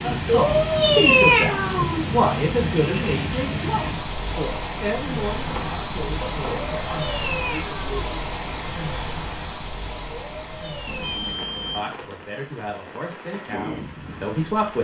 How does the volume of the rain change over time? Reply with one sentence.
The loudness of the rain goes down.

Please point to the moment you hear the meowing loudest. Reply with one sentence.
The volume of the meowing peaks at 1 second.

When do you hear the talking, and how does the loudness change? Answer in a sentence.
The talking can be heard from 0.0 to 8.2 s, getting quieter; and briefly from 11.8 to 14.7 s.